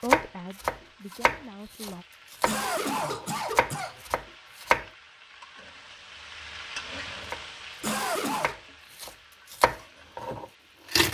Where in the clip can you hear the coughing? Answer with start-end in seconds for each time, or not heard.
2.5-4.0, 7.8-8.6.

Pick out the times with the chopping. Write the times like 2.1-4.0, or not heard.
0.1-4.8, 7.2-11.0.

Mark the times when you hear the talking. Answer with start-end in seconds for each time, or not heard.
0.0-2.0.